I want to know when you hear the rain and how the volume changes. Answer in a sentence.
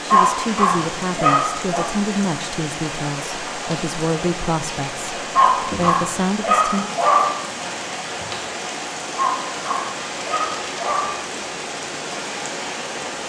You can hear the rain from 0.0 to 13.2 s, at a steady volume.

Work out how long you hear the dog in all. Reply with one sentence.
You can hear the dog for 6 seconds altogether.